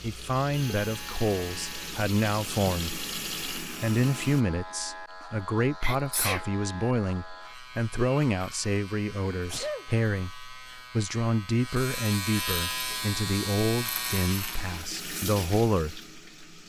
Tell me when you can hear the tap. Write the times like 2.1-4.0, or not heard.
0.0-4.5, 12.7-16.6.